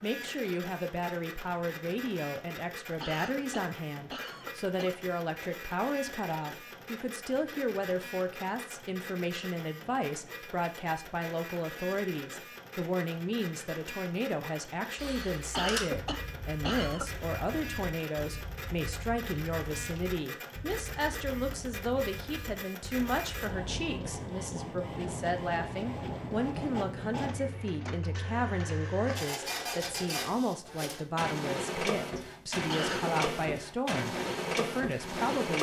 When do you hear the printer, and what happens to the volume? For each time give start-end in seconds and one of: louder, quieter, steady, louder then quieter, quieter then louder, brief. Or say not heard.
0.0-35.5 louder.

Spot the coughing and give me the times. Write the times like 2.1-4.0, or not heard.
3.0-5.0, 15.5-17.1, 32.6-33.1.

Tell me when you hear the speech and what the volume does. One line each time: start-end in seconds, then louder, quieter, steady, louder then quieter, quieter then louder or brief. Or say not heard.
0.0-35.5 steady.